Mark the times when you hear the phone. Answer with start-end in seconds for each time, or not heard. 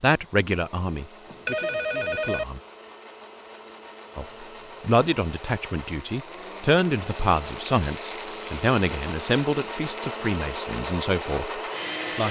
1.2-2.5.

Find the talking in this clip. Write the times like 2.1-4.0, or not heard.
0.0-2.6, 4.2-12.2.